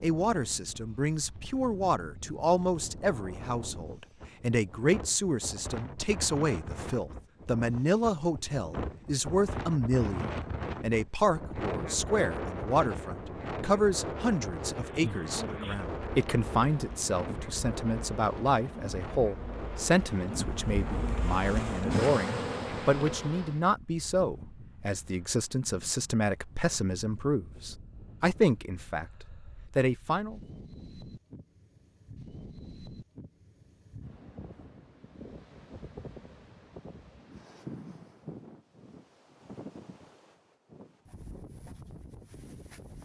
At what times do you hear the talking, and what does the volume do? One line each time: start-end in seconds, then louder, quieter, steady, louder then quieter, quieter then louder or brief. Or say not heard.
0.0-29.1 steady
29.7-30.4 brief.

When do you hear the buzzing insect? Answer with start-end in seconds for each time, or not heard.
14.7-23.6.